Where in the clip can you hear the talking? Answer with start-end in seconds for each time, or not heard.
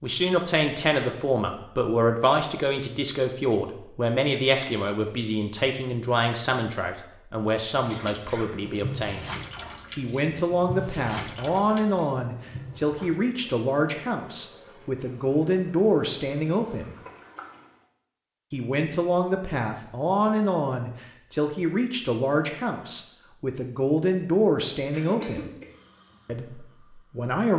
0.0-9.2, 9.9-16.9, 18.5-25.5, 26.2-27.5.